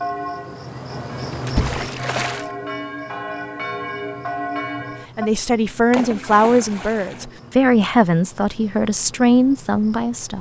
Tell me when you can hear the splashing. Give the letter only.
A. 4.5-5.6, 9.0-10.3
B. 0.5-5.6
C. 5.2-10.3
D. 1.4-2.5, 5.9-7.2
D.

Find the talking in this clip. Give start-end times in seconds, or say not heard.
5.2-10.3.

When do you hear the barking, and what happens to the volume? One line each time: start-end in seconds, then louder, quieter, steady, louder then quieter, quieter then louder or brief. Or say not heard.
not heard.